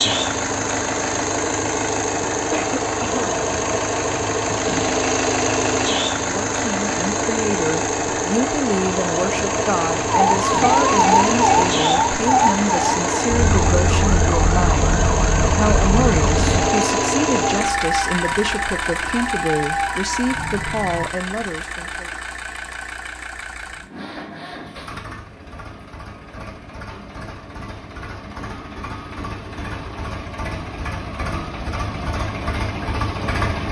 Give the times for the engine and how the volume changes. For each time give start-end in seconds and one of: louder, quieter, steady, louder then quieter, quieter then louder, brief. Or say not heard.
0.0-33.6 quieter.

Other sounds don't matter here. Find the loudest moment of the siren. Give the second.
11 s.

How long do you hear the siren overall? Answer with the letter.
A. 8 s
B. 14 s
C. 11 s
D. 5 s
C.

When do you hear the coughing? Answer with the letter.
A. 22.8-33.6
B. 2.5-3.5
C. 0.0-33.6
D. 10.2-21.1
B.